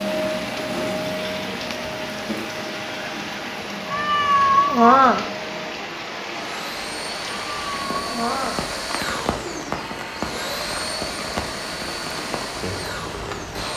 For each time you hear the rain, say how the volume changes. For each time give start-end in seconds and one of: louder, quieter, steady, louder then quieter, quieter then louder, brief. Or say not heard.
0.0-13.7 steady.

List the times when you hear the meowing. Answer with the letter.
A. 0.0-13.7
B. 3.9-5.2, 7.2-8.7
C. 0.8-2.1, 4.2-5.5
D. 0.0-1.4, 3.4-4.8
B.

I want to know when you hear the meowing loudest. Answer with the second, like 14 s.
5 s.